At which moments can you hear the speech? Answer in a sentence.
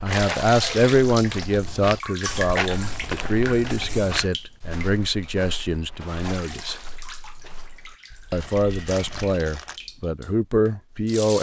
The speech can be heard from 0.0 to 6.8 s and from 8.3 to 11.3 s.